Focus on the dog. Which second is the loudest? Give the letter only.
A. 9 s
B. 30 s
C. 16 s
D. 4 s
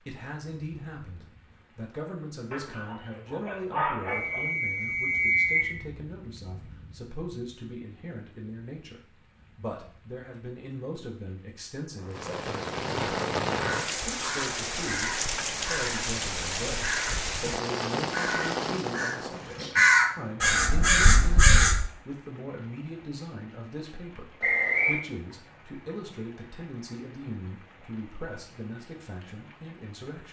D.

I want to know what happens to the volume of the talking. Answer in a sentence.
The loudness of the talking stays about the same.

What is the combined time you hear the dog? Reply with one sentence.
You can hear the dog for 2 seconds altogether.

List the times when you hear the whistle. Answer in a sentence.
The whistle can be heard from 4.0 to 5.8 s and from 24.4 to 25.1 s.